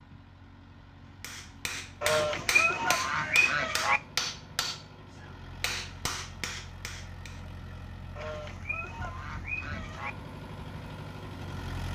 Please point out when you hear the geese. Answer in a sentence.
The geese can be heard from 2.0 to 4.0 s and from 8.2 to 10.1 s.